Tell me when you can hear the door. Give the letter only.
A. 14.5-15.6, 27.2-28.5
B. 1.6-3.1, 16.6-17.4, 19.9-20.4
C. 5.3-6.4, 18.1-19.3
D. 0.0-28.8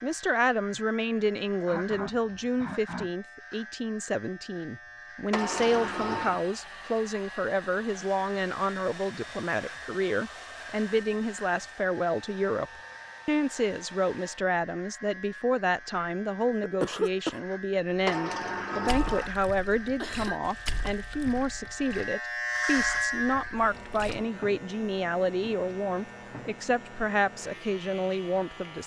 C.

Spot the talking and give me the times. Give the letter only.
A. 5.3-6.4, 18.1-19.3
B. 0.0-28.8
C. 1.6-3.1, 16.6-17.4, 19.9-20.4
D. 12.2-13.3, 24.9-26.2
B.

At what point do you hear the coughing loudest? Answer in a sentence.
The volume of the coughing peaks at 17 seconds.